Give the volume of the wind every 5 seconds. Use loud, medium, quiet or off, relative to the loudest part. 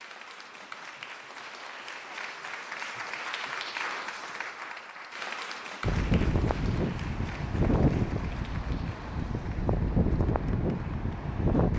off, loud, loud.